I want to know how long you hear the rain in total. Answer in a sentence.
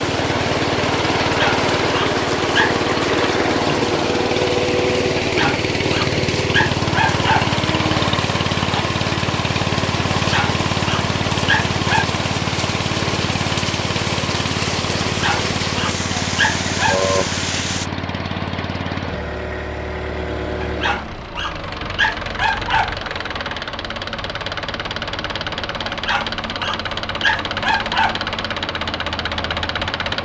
You can hear the rain for 18 seconds altogether.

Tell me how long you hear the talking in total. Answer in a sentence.
The talking can't be heard in this clip.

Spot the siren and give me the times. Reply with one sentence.
The siren can't be heard in this clip.